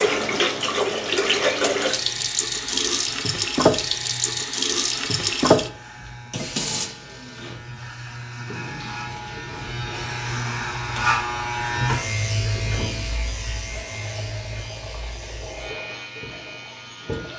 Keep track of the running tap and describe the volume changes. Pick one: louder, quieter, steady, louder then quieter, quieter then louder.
quieter.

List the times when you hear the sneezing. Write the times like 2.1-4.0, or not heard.
not heard.